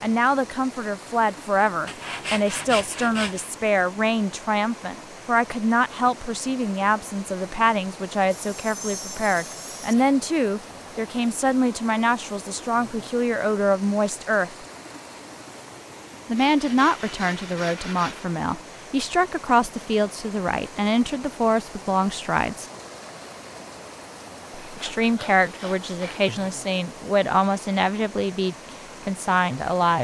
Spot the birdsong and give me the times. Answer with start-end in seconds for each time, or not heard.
not heard.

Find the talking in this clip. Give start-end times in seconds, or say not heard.
0.0-14.6, 16.2-22.6, 24.8-29.9.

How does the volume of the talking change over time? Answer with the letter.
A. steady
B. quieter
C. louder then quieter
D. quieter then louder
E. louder
A.